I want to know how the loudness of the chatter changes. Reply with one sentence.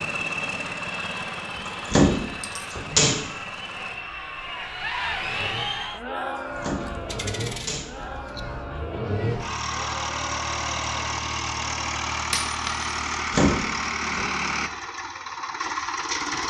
The loudness of the chatter goes up, then down.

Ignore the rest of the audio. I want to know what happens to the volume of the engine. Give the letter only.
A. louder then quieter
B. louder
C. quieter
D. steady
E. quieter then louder
E.